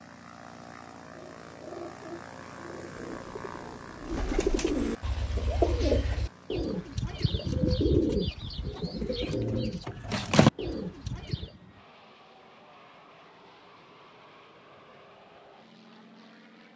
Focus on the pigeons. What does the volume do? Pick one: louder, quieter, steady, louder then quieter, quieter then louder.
louder.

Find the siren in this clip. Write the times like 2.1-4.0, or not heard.
not heard.